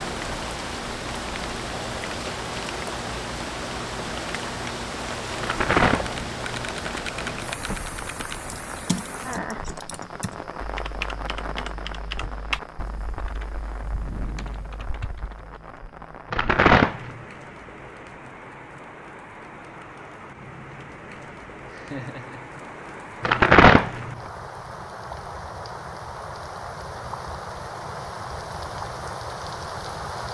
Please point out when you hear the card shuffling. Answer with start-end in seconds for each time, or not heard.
5.4-7.8, 16.3-17.2, 23.2-24.1.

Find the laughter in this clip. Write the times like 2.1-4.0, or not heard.
21.7-22.7.